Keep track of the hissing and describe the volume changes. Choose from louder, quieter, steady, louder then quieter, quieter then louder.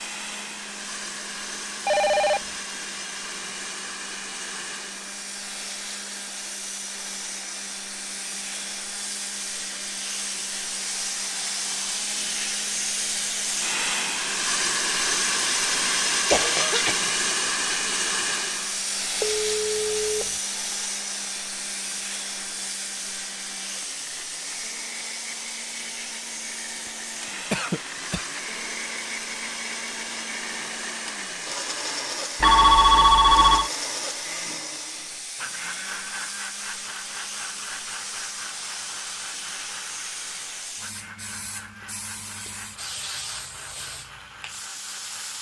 louder then quieter.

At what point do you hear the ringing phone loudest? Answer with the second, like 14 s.
33 s.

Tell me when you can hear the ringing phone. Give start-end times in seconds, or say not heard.
1.9-2.4, 19.2-20.4, 32.4-33.7.